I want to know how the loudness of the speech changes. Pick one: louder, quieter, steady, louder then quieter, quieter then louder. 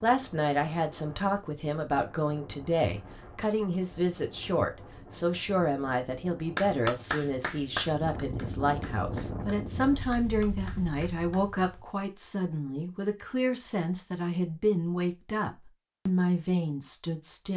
steady.